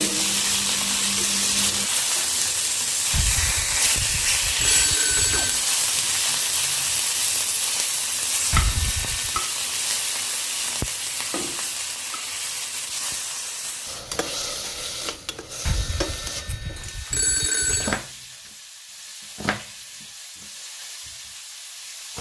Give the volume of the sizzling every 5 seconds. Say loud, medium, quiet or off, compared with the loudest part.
loud, loud, medium, medium, quiet.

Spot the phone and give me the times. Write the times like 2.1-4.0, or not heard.
3.1-5.7, 8.5-9.4, 15.7-18.0.